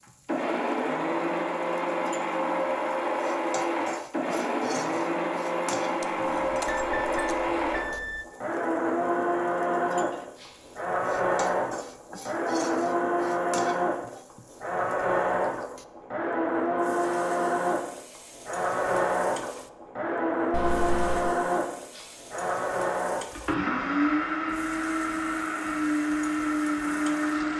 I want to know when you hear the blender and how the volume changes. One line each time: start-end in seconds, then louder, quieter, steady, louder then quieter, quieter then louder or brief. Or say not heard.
0.2-27.5 steady.